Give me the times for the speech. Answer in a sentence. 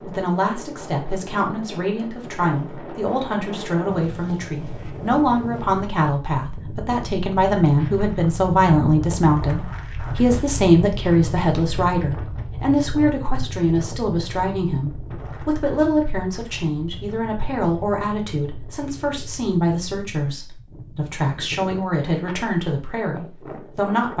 The speech can be heard from 0.0 to 24.1 s.